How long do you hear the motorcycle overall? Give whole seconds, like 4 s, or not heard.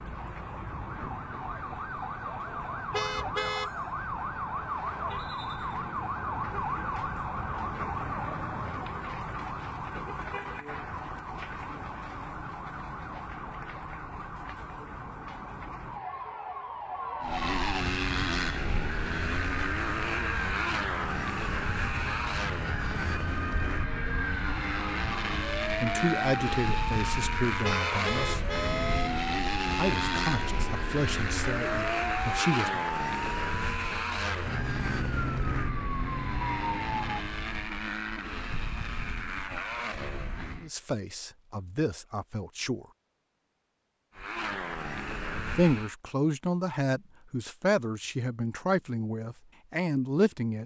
25 s.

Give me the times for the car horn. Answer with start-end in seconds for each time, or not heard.
2.9-3.7, 27.6-29.1.